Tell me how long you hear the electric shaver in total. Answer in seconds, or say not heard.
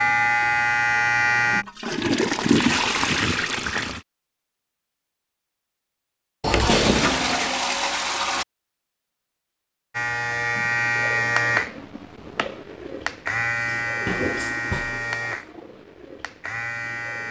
9 s.